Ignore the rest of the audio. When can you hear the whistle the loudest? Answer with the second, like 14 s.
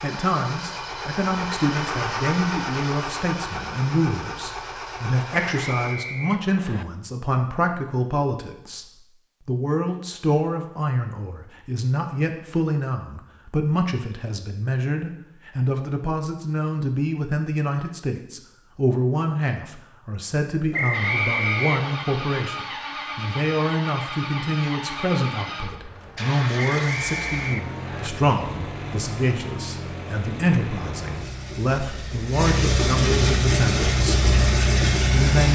21 s.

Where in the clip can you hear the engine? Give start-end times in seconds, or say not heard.
0.0-6.0, 20.9-35.5.